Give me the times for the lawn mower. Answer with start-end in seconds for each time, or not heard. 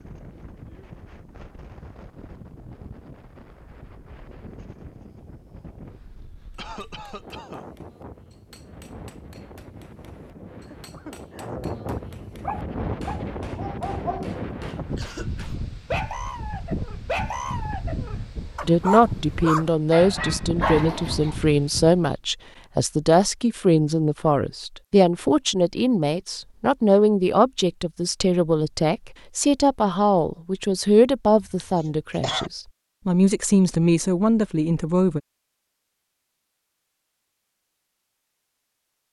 not heard.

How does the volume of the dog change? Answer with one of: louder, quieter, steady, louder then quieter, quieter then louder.
louder.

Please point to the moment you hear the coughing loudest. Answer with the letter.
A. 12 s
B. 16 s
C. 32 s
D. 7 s
C.